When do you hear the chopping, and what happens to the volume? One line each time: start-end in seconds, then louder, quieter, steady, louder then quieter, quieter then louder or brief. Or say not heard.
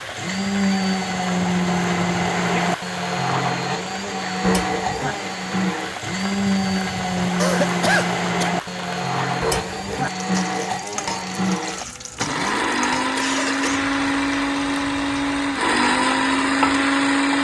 not heard.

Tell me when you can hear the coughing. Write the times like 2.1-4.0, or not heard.
2.4-2.8, 7.3-8.5, 13.2-13.8.